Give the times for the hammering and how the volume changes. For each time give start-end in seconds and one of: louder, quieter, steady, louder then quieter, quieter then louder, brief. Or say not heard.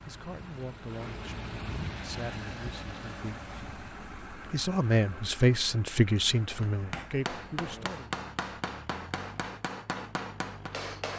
6.5-11.1 steady.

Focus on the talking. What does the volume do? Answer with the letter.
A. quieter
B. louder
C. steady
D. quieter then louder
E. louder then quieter
E.